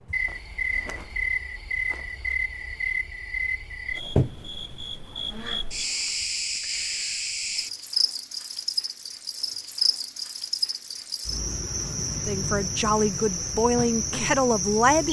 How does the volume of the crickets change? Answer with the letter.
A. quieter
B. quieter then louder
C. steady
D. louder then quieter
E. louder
C.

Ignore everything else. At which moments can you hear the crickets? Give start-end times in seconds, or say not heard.
0.0-15.0.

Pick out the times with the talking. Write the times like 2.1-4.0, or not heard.
12.2-15.0.